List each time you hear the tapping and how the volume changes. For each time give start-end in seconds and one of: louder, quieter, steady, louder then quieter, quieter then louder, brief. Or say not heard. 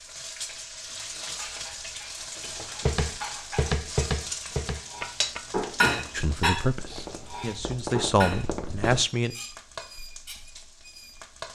2.9-9.1 quieter then louder.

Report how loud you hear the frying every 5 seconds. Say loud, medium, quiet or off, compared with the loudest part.
loud, loud, medium.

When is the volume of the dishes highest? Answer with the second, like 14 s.
6 s.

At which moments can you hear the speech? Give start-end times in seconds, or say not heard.
6.1-9.3.